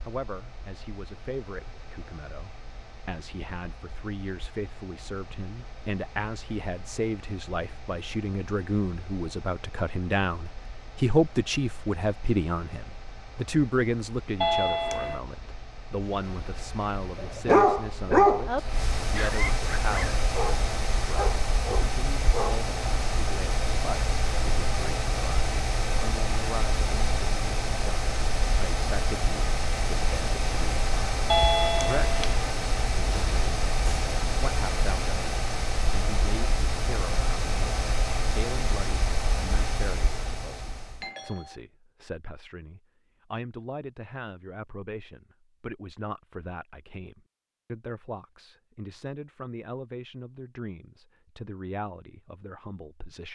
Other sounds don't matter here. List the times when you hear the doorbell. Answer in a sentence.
You can hear the doorbell from 14.4 to 15.2 s, from 31.3 to 32.5 s and from 41.0 to 41.6 s.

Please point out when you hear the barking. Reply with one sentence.
You can hear the barking from 17.1 to 22.6 s.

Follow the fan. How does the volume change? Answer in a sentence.
The volume of the fan goes up.